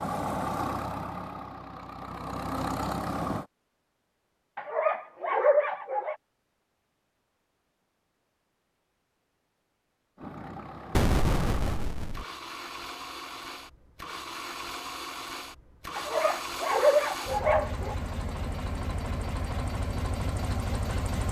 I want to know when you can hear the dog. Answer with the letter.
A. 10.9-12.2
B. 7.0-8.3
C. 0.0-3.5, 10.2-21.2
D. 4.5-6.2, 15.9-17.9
D.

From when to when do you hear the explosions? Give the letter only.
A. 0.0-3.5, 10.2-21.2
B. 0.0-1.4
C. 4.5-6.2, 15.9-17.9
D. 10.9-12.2
D.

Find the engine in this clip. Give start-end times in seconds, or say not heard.
0.0-3.5, 10.2-21.2.